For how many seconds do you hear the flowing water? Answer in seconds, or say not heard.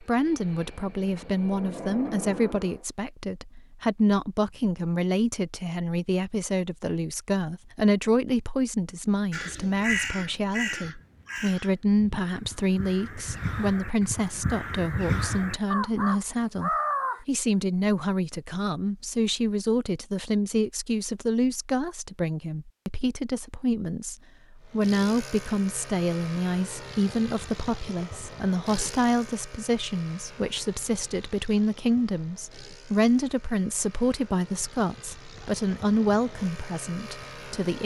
not heard.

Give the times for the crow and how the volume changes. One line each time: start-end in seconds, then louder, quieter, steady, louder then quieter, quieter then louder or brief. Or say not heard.
9.3-17.2 quieter then louder.